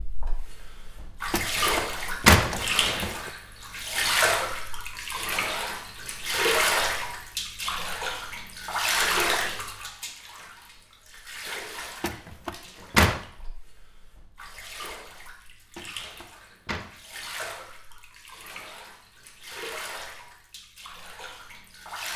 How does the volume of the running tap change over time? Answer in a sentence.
The loudness of the running tap goes down.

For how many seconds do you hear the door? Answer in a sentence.
You can hear the door for 4 seconds altogether.